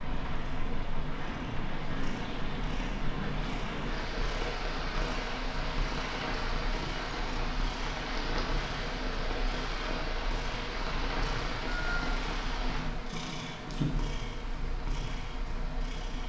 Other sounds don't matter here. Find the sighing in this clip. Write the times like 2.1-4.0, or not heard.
not heard.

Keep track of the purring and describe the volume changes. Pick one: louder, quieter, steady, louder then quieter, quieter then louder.
louder.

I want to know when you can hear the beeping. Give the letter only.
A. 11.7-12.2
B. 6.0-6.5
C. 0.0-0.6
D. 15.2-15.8
A.